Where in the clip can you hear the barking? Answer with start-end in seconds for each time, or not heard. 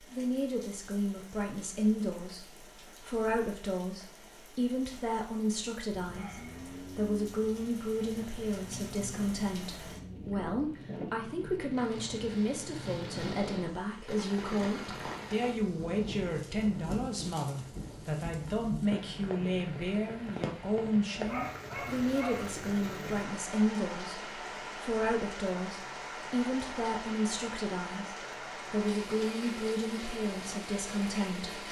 21.1-22.5.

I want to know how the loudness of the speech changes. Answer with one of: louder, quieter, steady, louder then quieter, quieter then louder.
steady.